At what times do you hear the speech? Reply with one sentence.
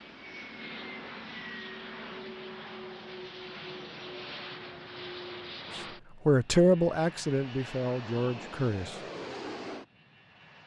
The speech can be heard from 6.2 to 9.0 s.